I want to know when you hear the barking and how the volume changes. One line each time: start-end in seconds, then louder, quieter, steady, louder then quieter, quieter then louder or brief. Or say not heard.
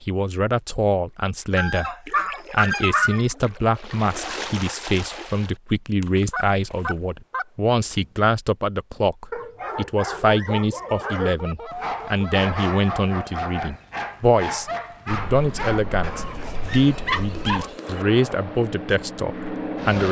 9.3-18.1 steady.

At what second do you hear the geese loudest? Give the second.
3 s.